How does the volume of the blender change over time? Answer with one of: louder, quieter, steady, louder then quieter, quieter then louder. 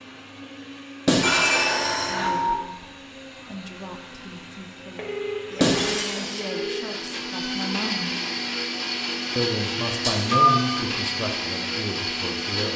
louder.